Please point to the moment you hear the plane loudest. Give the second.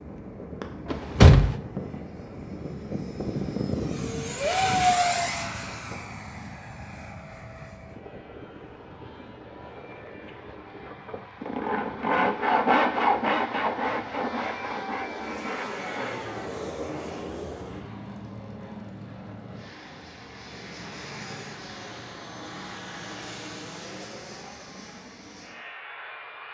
5 s.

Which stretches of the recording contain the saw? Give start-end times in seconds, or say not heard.
10.8-16.3.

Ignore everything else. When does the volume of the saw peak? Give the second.
13 s.